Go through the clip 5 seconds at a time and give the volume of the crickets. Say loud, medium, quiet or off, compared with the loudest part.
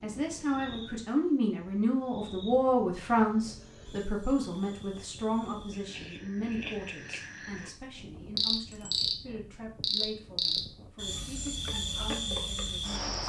quiet, loud, loud.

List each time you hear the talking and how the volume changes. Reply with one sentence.
You can hear the talking from 0.0 to 13.2 s, getting quieter.